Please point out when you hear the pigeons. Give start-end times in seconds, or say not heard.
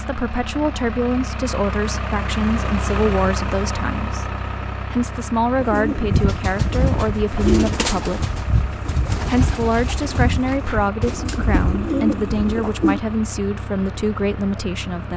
5.5-13.0.